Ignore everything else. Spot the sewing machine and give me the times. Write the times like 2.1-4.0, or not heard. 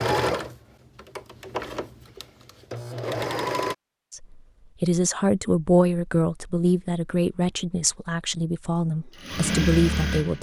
0.0-3.8, 9.2-10.3.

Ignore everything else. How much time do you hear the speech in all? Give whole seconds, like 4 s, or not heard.
6 s.